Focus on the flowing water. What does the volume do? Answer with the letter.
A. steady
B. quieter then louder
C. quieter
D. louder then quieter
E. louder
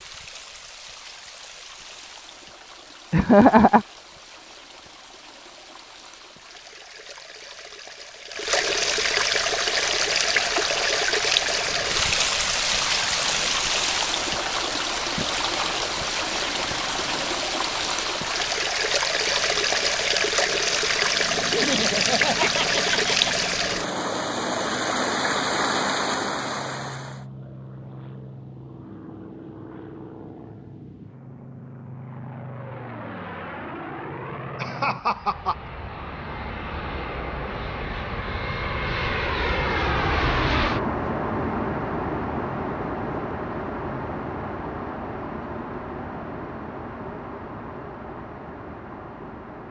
E.